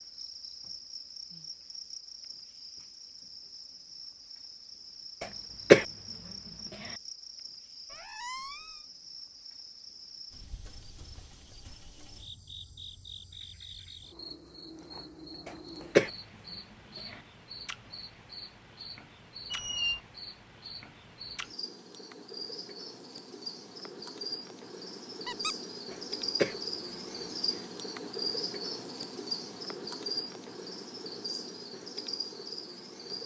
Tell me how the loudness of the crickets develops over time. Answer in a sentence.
The volume of the crickets goes up.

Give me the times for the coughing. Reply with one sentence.
You can hear the coughing from 5.2 to 5.8 s, from 15.4 to 16.1 s and from 25.9 to 26.6 s.